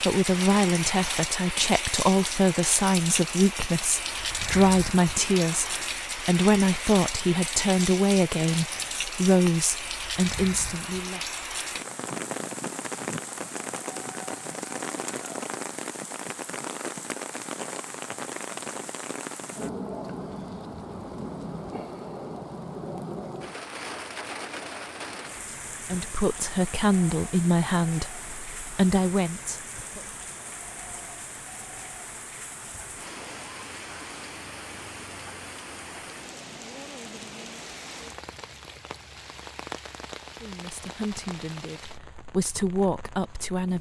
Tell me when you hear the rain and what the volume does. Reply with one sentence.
The rain can be heard from 0.0 to 43.7 s, getting quieter.